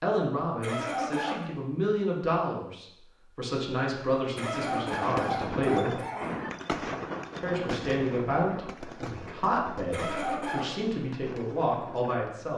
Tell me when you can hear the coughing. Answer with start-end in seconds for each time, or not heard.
0.6-1.4, 4.3-6.4, 9.9-10.8.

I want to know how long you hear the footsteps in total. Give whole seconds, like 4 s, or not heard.
not heard.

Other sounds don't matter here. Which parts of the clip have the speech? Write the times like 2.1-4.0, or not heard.
0.0-6.0, 7.4-12.5.